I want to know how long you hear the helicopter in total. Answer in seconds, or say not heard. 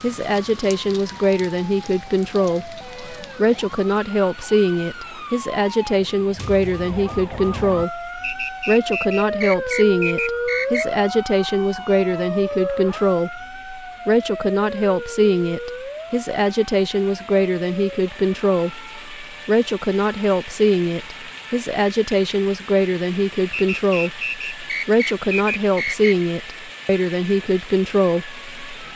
not heard.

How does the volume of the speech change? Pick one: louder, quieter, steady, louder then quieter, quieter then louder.
steady.